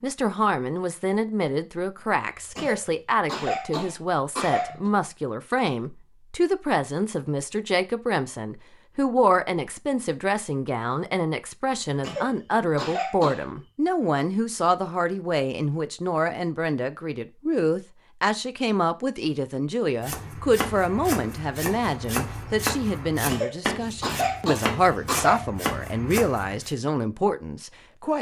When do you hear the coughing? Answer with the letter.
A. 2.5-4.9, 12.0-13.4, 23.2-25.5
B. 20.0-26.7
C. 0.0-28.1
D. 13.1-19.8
A.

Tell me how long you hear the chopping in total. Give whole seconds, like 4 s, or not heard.
7 s.